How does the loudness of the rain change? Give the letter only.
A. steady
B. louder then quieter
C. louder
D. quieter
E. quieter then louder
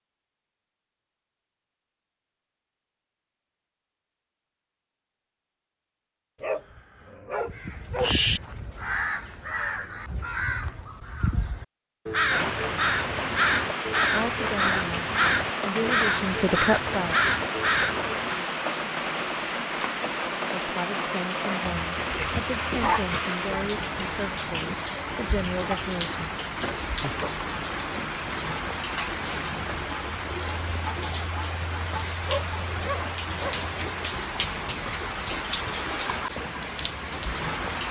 A.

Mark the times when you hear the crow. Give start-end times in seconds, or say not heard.
7.4-18.1.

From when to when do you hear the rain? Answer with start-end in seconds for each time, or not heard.
12.3-37.8.